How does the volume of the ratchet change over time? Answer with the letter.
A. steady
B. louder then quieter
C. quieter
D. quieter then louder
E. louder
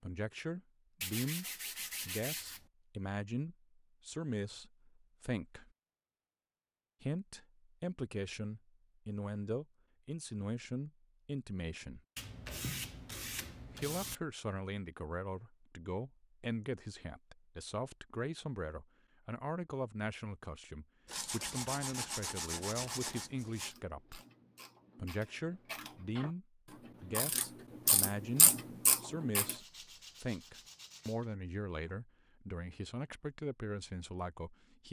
E.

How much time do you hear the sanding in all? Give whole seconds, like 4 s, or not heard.
8 s.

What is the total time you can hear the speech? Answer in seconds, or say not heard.
31 s.